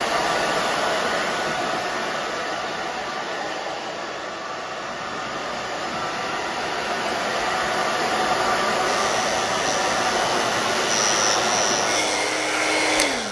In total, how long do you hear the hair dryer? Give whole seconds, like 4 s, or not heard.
13 s.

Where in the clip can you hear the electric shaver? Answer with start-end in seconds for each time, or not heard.
8.8-13.2.